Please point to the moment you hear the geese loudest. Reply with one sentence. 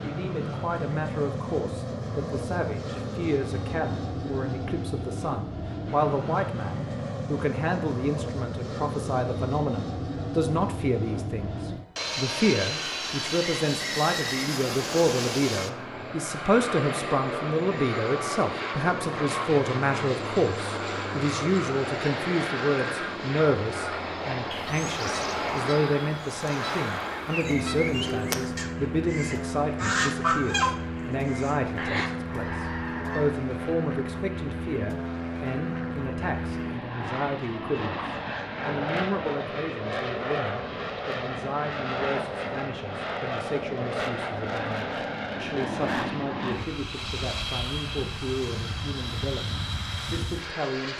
The loudest moment of the geese is at 30 seconds.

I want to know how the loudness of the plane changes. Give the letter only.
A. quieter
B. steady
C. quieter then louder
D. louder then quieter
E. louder
B.